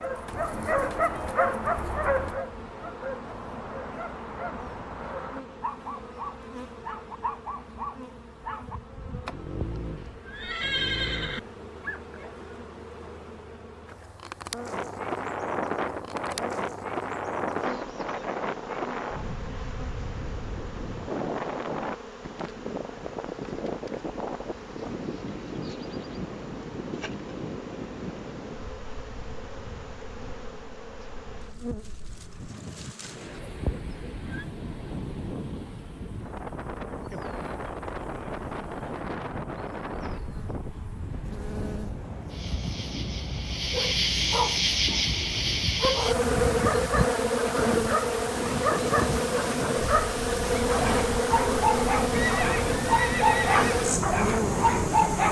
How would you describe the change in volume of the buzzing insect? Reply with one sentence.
The loudness of the buzzing insect goes up.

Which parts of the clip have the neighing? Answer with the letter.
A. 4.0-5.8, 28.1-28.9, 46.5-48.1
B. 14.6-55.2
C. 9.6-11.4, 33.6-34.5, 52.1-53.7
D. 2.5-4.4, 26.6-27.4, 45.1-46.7
C.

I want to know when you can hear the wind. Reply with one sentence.
You can hear the wind from 14.6 to 55.2 s.